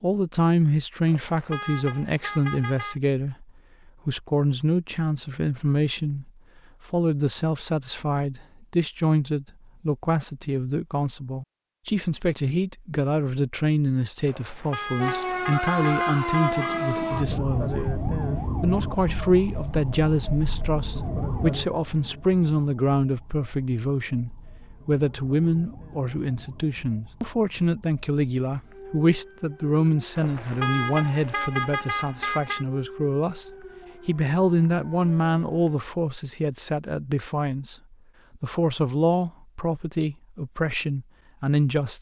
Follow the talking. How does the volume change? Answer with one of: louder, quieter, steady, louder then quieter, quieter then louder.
steady.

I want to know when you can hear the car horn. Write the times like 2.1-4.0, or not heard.
1.1-3.0, 14.2-16.9, 30.1-32.6.